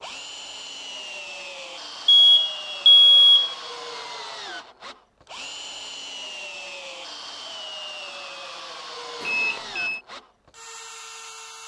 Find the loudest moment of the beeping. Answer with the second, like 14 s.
3 s.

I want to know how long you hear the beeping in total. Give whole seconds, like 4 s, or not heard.
2 s.